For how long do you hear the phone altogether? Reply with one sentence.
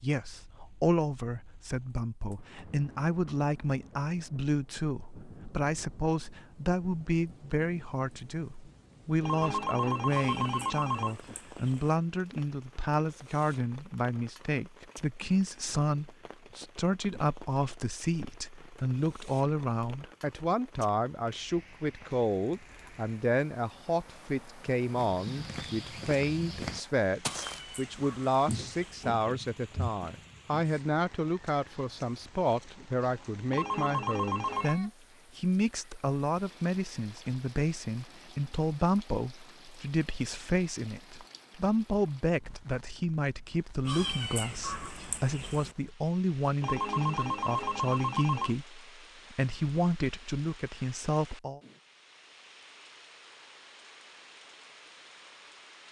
The phone can be heard for 5 seconds in total.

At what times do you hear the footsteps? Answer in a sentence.
The footsteps can be heard from 24.9 to 30.6 s.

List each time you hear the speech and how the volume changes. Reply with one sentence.
The speech can be heard from 0.0 to 51.6 s, at a steady volume.